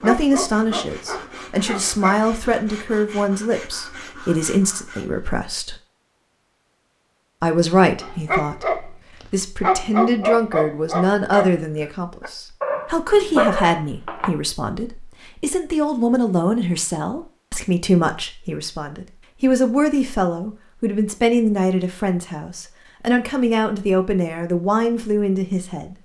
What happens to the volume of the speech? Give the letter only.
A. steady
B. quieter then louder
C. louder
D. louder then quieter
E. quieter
A.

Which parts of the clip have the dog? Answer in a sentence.
You can hear the dog from 0.0 to 2.2 s and from 8.0 to 14.3 s.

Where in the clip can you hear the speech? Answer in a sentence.
The speech can be heard from 0.0 to 5.8 s and from 7.4 to 25.9 s.